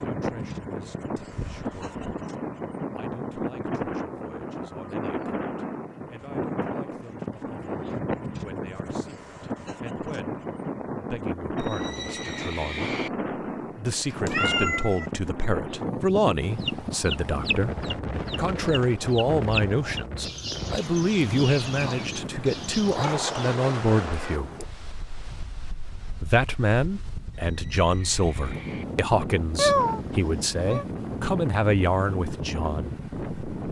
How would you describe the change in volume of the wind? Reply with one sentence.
The loudness of the wind stays about the same.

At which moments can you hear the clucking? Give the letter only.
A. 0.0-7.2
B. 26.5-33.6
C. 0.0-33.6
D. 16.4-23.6
D.